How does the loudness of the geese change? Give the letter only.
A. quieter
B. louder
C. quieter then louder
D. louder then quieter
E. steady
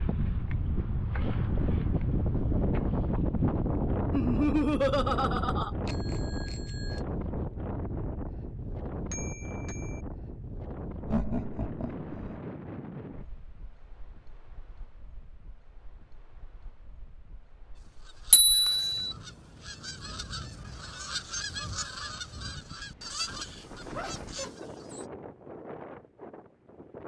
D.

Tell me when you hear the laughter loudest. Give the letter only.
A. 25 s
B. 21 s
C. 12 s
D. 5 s
D.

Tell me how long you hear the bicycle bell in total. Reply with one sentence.
The bicycle bell can be heard for 3 seconds in total.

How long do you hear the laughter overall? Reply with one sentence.
You can hear the laughter for 4 seconds altogether.